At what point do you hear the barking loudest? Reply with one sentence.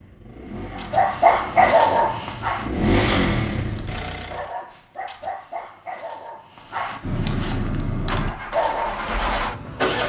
The volume of the barking peaks at 2 seconds.